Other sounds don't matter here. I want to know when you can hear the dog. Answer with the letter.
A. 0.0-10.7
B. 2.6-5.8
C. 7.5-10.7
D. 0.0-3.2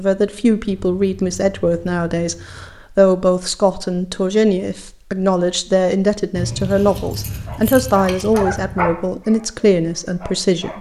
C.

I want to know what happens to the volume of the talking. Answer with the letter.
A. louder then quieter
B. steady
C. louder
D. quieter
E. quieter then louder
B.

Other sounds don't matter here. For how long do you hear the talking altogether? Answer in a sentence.
You can hear the talking for 11 seconds altogether.